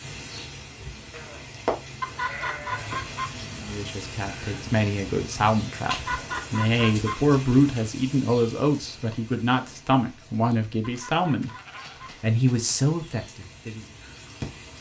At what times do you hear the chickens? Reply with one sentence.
The chickens can be heard from 2.0 to 3.2 s, from 5.9 to 7.2 s and from 10.8 to 12.1 s.